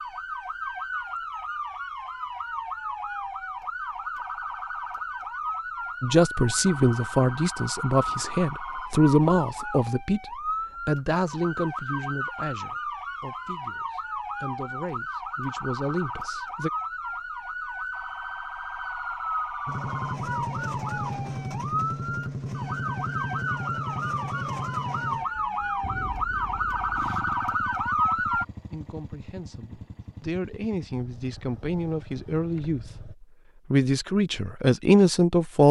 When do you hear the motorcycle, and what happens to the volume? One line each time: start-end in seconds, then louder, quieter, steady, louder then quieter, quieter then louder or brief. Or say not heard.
19.6-33.1 quieter.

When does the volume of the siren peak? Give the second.
28 s.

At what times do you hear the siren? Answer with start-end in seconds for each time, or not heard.
0.0-28.4.